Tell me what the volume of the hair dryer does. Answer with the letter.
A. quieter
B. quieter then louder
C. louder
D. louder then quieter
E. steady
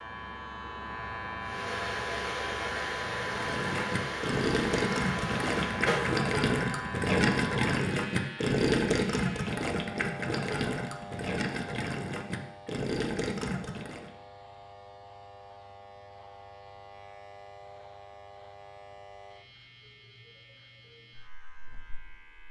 E.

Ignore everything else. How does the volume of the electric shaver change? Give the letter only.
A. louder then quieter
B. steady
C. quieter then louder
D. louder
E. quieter
E.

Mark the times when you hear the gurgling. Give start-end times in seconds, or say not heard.
3.3-14.1.